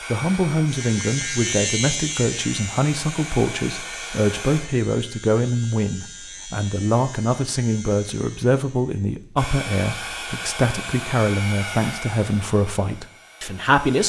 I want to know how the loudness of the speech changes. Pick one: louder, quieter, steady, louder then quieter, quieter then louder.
steady.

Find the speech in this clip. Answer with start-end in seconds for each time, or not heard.
0.1-14.0.